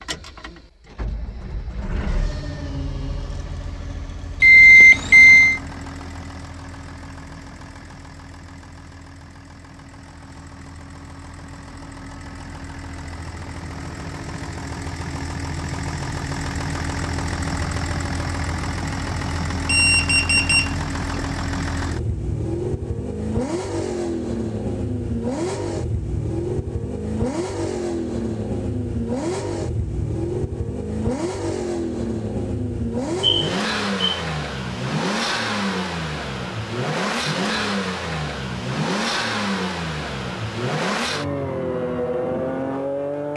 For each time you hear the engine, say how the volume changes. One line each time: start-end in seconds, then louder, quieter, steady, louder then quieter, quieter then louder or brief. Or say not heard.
0.0-43.3 louder.